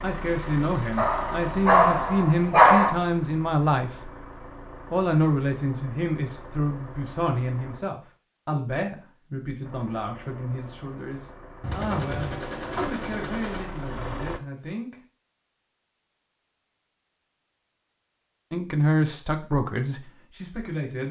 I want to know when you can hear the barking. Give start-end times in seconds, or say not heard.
0.9-2.9.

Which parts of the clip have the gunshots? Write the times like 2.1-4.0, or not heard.
11.6-13.7.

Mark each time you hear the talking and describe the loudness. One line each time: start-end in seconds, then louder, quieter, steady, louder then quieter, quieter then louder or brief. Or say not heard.
0.0-4.1 steady
4.9-15.0 quieter
18.5-21.0 brief.